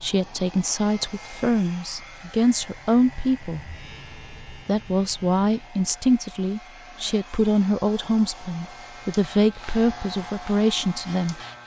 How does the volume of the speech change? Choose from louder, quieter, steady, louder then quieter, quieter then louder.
steady.